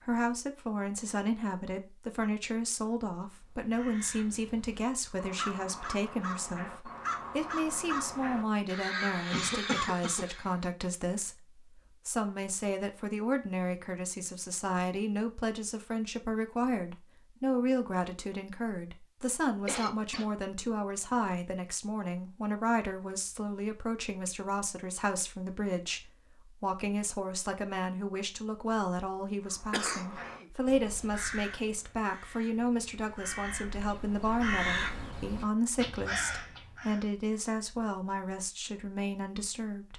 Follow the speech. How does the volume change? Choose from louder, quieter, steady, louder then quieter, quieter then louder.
steady.